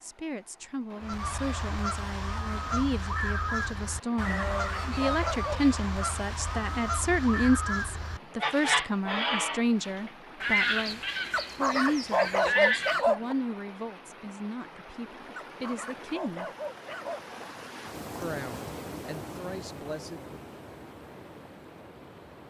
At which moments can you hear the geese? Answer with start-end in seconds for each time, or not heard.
1.0-13.1.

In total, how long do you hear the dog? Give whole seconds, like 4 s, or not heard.
5 s.